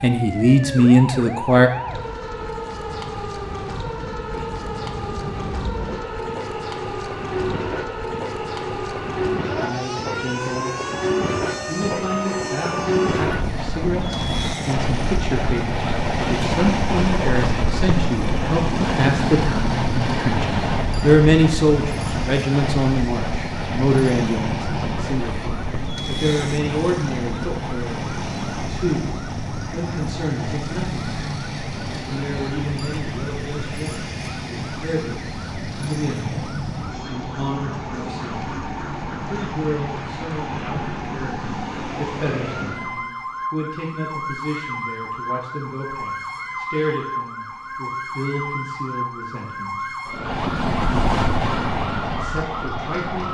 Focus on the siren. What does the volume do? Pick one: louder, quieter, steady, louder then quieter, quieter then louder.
steady.